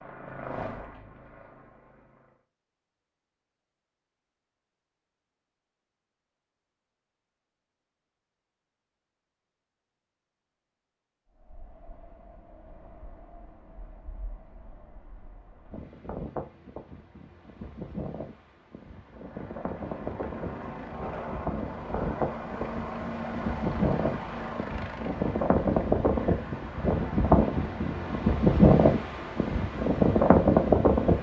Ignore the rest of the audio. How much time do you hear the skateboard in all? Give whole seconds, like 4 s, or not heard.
not heard.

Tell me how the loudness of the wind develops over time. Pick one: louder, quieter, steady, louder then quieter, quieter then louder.
louder.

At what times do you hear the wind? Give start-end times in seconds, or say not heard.
11.3-31.1.